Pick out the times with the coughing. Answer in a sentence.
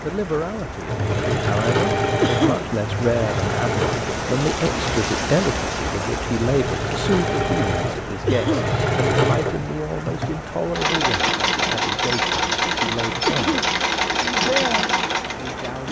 You can hear the coughing from 2.2 to 2.7 s, from 8.2 to 8.8 s and from 13.2 to 13.8 s.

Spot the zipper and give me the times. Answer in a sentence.
The zipper can't be heard in this clip.